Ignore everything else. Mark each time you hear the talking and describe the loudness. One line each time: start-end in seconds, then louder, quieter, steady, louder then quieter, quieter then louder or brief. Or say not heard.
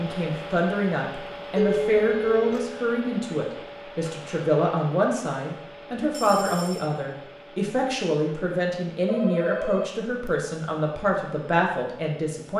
0.0-12.5 steady.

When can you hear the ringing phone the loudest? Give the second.
2 s.